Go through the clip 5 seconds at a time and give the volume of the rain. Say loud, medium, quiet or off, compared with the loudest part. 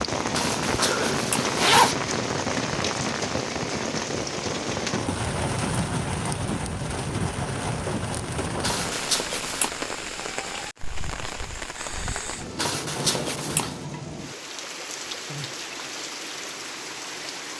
loud, loud, medium, medium.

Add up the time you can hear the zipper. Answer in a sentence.
You can hear the zipper for 4 seconds altogether.